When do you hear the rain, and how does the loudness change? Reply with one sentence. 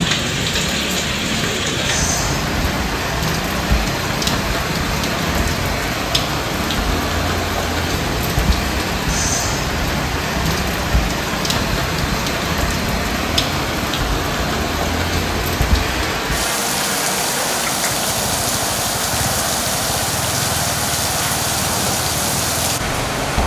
The rain can be heard from 0.0 to 23.4 s, at a steady volume.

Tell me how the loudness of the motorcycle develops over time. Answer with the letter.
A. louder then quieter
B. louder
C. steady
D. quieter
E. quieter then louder
C.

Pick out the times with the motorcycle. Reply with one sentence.
You can hear the motorcycle from 0.0 to 23.4 s.